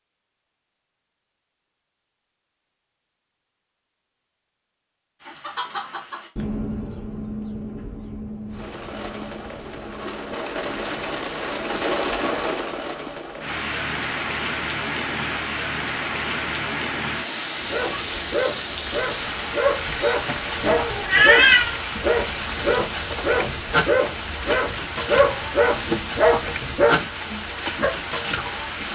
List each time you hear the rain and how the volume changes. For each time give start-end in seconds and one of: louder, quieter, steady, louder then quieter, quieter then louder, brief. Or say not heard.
8.5-28.9 steady.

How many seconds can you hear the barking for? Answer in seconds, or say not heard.
10 s.